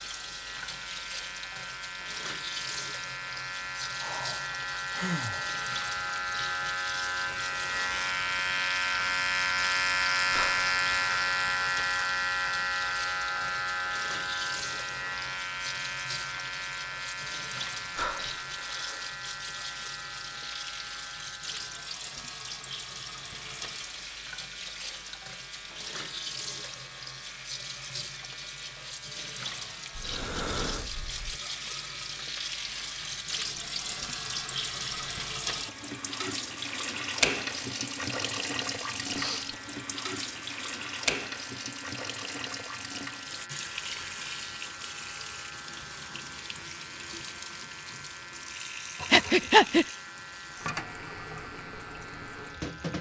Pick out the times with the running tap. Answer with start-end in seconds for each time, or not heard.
0.0-52.9.